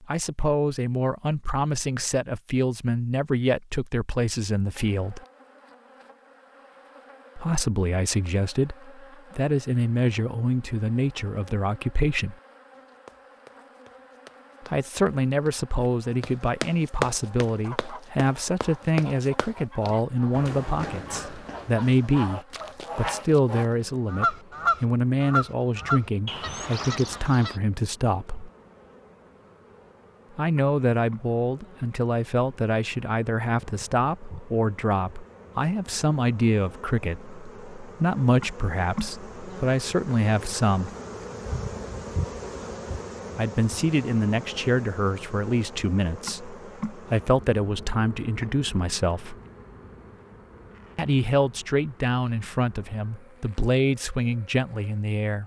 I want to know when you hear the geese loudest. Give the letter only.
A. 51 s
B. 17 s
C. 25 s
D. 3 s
C.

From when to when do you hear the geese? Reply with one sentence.
You can hear the geese from 17.2 to 27.6 s.